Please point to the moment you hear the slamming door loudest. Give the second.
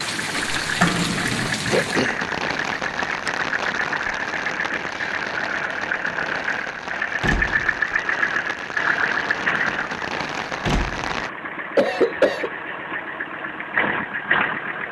1 s.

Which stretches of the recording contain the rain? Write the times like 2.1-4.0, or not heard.
0.0-11.3.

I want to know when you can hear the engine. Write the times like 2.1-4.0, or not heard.
0.2-14.8.